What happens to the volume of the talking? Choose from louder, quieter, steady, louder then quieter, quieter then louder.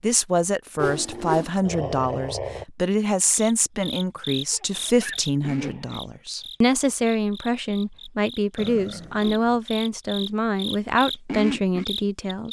steady.